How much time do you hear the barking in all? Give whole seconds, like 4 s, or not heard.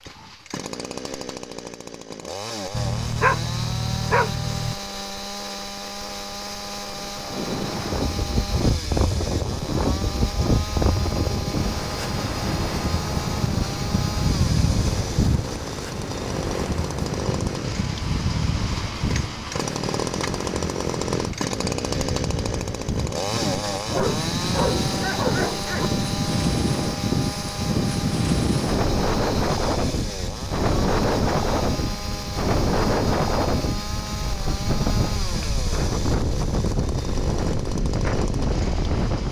4 s.